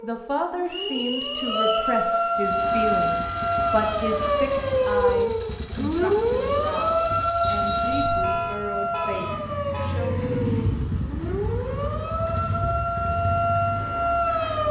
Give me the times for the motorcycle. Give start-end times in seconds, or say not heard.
2.4-14.6.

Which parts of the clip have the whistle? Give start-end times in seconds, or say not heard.
0.7-1.9, 7.4-8.2.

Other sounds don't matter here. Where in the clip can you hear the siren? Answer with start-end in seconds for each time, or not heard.
0.0-14.6.